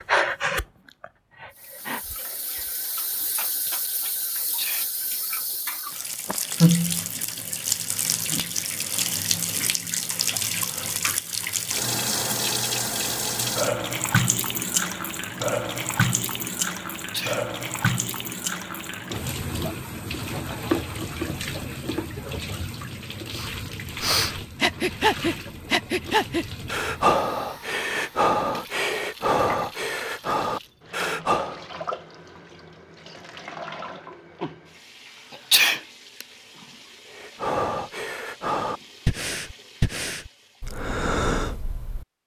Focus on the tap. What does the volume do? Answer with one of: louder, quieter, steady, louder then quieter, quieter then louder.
quieter.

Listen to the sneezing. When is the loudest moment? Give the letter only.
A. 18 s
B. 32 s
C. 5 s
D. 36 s
D.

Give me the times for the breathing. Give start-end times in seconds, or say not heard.
0.0-2.7, 23.3-31.6, 37.1-42.0.